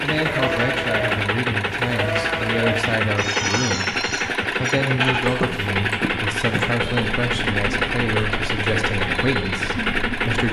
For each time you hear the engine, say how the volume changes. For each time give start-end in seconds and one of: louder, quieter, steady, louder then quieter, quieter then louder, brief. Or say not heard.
0.0-10.4 steady.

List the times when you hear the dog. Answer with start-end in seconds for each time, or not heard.
not heard.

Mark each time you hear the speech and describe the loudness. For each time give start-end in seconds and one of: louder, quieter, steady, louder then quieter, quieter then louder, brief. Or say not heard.
0.0-10.4 steady.